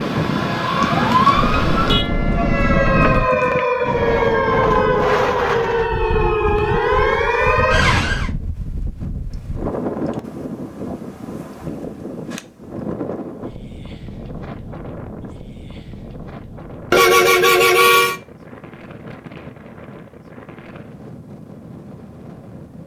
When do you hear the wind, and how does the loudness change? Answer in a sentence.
You can hear the wind from 0.0 to 22.8 s, getting quieter.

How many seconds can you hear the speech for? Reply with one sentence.
The speech can't be heard in this clip.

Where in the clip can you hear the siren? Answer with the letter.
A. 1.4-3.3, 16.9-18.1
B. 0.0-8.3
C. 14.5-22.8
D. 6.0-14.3
B.